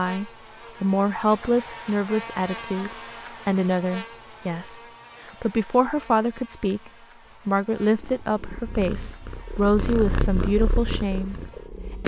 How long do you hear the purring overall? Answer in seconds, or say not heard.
4 s.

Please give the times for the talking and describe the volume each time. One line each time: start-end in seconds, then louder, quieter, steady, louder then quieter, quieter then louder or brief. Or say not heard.
0.0-11.3 steady.